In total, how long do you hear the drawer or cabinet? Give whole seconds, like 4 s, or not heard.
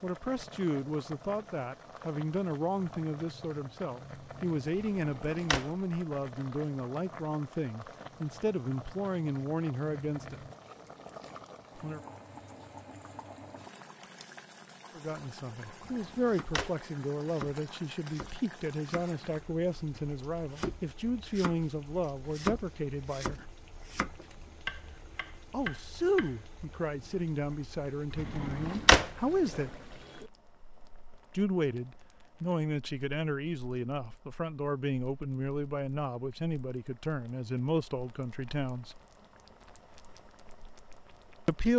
3 s.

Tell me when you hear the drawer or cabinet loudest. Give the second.
29 s.